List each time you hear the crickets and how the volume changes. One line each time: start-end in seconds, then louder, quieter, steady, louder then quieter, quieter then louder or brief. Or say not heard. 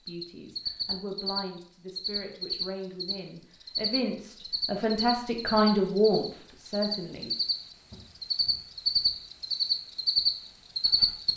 0.1-11.3 louder.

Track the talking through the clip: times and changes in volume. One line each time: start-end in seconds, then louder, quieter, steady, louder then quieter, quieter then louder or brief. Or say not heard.
0.1-7.3 louder.